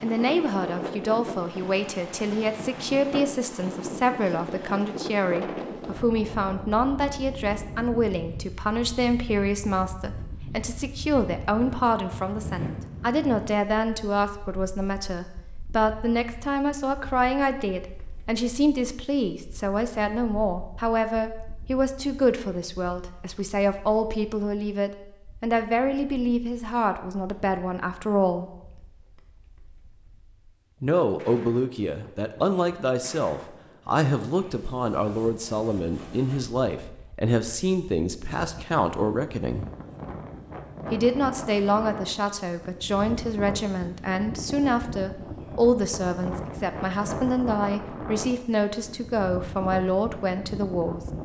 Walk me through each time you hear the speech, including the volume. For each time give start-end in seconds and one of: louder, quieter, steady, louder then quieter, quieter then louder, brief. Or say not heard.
0.0-28.4 steady
30.8-39.6 steady
40.9-51.0 steady.